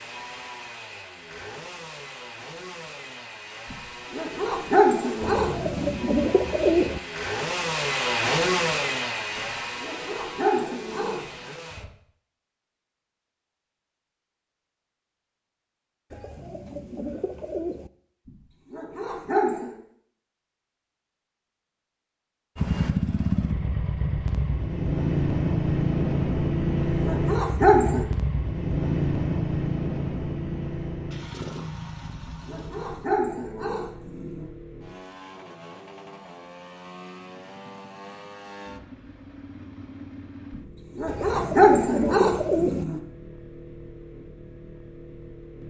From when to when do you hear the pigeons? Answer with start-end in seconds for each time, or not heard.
5.2-7.0, 16.1-17.9, 41.0-42.9.